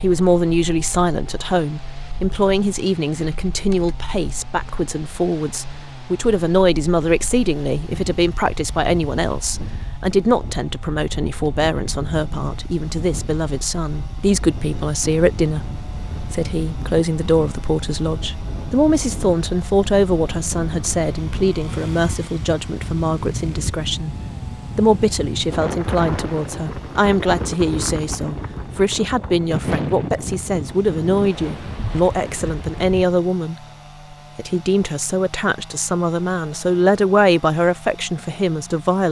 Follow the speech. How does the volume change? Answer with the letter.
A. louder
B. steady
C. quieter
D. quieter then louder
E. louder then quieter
B.